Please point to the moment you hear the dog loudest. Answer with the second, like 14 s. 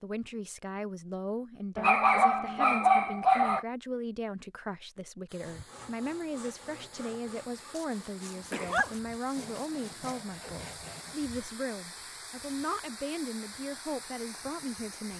3 s.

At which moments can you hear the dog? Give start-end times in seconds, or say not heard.
1.8-3.6, 7.8-10.2.